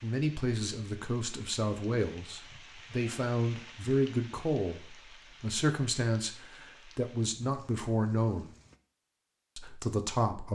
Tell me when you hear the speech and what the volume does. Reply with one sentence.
You can hear the speech from 0.0 to 8.5 s, at a steady volume; and briefly from 9.6 to 10.4 s.